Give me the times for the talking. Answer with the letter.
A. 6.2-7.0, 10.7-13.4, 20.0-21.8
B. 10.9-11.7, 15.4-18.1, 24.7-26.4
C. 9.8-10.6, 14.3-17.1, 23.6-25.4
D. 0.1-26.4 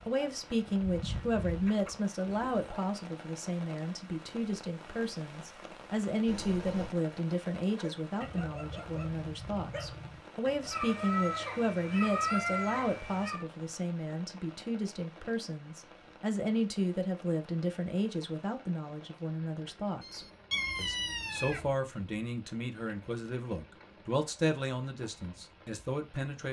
D.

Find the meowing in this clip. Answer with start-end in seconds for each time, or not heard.
6.2-7.0, 10.7-13.4, 20.0-21.8.